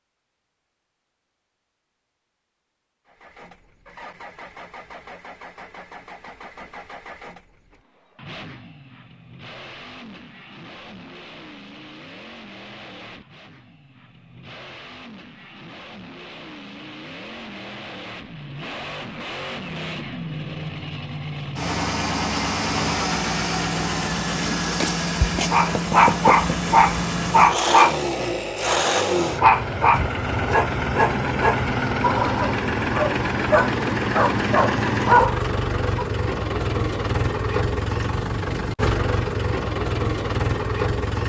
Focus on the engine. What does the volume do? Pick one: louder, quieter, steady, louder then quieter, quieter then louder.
louder.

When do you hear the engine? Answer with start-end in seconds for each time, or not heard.
3.0-41.2.